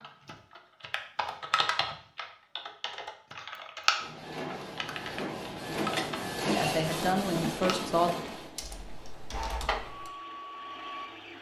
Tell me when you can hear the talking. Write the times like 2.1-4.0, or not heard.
6.5-8.1.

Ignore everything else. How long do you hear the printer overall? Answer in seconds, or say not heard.
7 s.